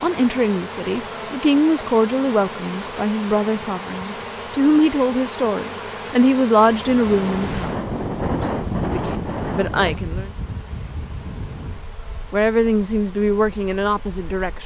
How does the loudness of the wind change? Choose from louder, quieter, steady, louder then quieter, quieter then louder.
quieter.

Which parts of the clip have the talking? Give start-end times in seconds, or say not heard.
0.0-10.3, 12.3-14.6.